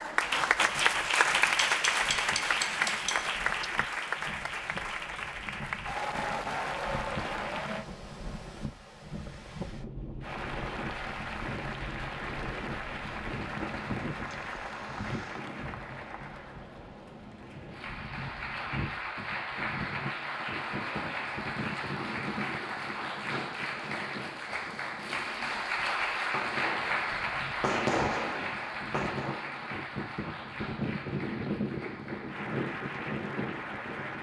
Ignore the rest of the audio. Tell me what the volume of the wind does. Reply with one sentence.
The volume of the wind goes up.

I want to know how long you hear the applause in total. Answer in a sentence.
You can hear the applause for 32 seconds altogether.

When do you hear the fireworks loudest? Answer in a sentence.
The volume of the fireworks peaks at 28 seconds.